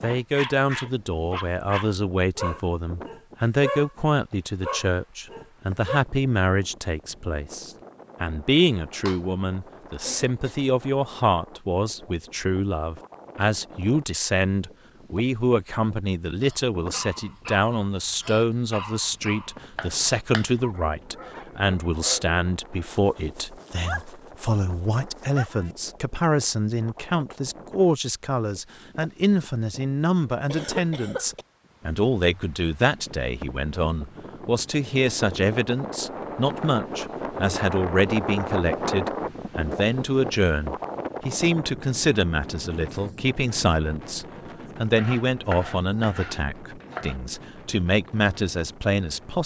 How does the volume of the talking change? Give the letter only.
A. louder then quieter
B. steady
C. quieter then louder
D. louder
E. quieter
B.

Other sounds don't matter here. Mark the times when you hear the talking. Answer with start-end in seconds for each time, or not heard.
0.0-49.4.